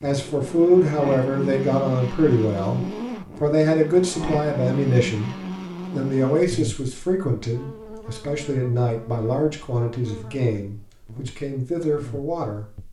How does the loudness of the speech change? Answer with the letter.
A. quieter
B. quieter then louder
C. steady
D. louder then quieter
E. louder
A.